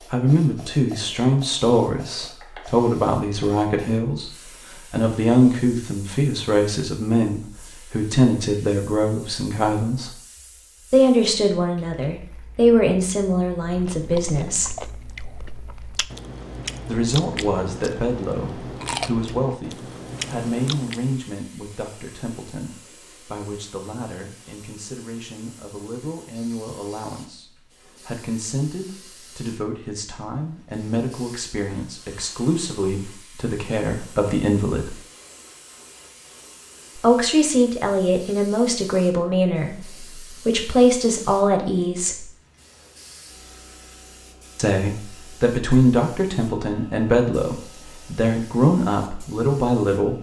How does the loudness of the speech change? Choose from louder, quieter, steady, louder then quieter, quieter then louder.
quieter then louder.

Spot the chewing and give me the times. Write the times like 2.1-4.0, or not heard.
13.6-21.1.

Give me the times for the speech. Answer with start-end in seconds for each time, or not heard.
0.1-10.2, 10.9-14.8, 16.9-35.0, 37.0-42.3, 44.5-50.1.